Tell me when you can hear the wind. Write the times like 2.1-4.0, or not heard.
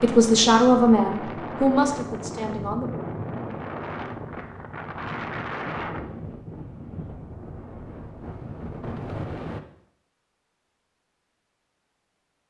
0.0-9.6.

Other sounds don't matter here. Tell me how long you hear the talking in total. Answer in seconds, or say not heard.
3 s.